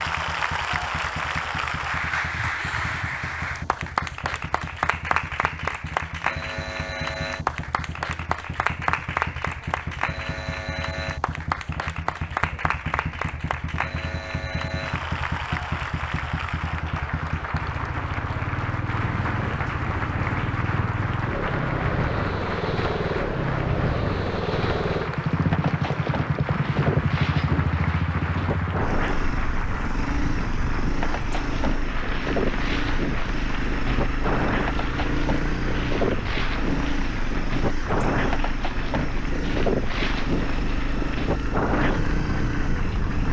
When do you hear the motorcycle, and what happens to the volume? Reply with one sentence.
The motorcycle can be heard from 0.0 to 43.2 s, getting louder.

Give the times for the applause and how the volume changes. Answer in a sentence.
The applause can be heard from 0.0 to 43.2 s, getting quieter.